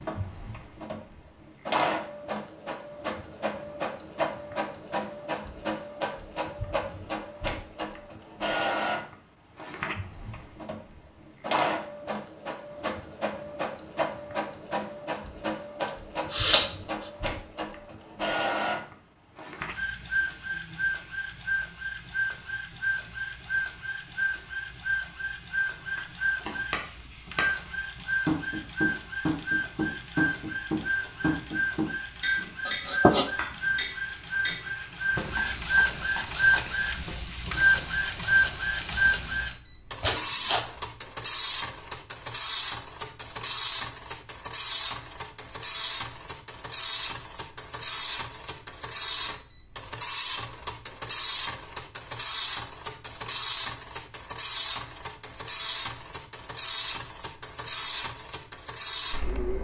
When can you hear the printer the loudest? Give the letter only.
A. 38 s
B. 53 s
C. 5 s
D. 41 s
A.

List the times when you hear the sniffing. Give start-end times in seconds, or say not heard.
15.8-17.1, 32.6-33.2, 40.0-40.6.